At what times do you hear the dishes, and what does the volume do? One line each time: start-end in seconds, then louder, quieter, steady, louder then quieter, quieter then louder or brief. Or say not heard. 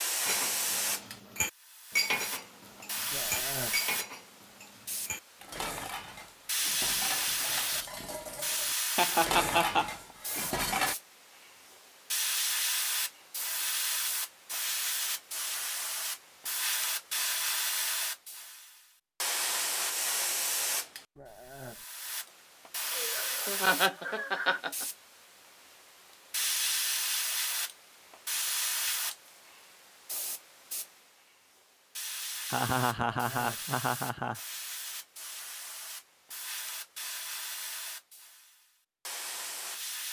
0.2-10.9 quieter then louder.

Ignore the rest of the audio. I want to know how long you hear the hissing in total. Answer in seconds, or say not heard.
40 s.